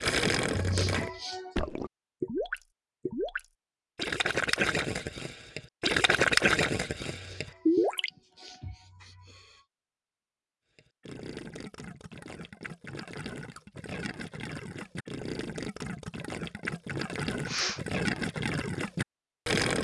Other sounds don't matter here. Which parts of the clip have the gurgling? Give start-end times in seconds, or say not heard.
0.0-8.1, 10.8-19.7.